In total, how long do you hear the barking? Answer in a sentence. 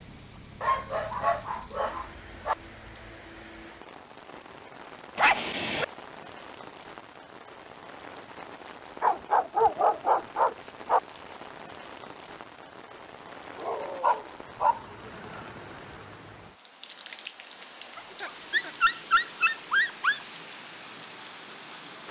The barking can be heard for 8 seconds in total.